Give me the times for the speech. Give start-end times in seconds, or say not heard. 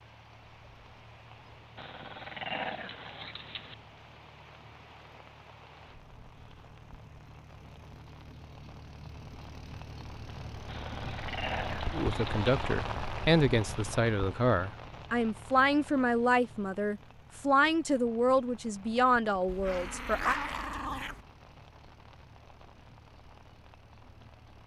11.9-20.4.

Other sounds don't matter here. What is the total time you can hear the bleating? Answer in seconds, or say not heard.
not heard.